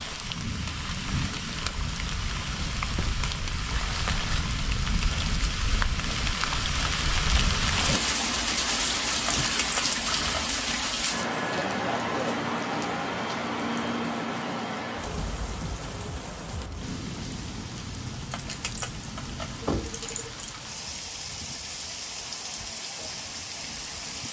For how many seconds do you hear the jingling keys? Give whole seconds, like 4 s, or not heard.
3 s.